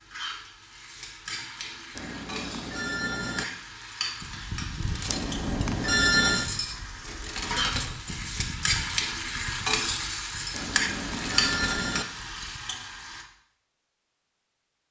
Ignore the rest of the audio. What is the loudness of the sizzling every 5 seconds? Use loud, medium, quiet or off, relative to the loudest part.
medium, loud, loud.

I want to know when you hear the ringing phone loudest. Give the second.
6 s.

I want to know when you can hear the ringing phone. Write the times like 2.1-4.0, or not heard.
1.9-3.5, 5.0-6.5, 10.5-12.1.